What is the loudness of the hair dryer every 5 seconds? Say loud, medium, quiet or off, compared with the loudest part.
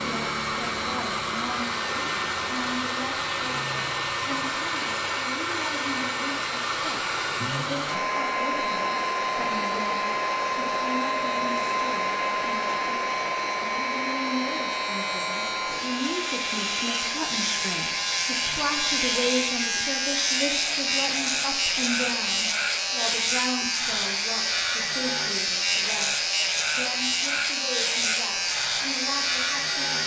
loud, loud, loud, medium, quiet, quiet.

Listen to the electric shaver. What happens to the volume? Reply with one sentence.
The volume of the electric shaver goes up.